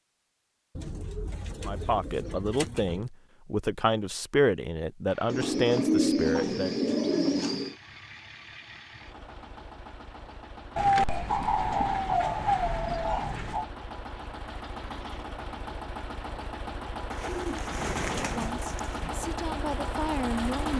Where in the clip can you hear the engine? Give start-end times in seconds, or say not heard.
5.0-20.7.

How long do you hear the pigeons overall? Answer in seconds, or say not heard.
10 s.